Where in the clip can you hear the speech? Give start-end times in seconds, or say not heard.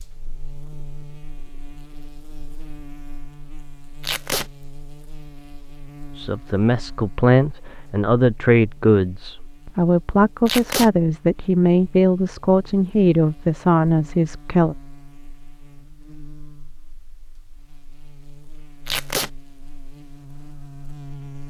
6.2-14.8.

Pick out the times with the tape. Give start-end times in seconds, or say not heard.
4.0-4.5, 10.4-10.9, 18.9-19.3.